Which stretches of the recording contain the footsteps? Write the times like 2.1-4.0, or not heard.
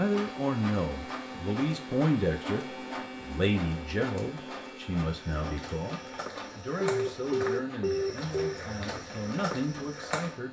5.0-10.4.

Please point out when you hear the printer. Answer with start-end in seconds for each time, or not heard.
0.0-10.4.